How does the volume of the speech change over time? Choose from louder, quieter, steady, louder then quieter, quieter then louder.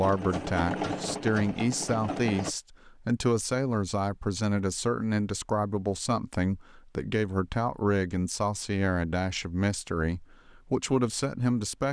steady.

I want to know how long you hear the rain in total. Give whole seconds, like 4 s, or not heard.
not heard.